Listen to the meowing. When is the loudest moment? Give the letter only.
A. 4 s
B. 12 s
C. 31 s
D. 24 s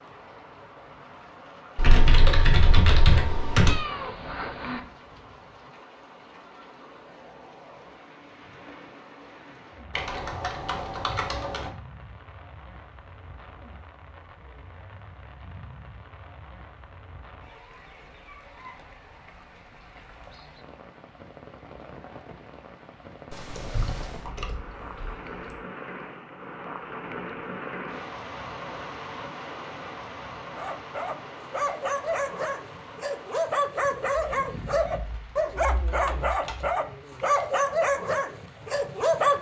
A.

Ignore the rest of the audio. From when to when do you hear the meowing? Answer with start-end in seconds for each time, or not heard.
3.6-4.8, 23.3-24.3.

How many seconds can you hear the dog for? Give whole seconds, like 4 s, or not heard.
9 s.